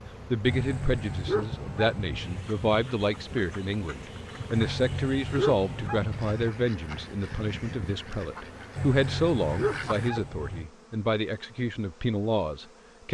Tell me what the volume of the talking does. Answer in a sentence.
The volume of the talking stays about the same.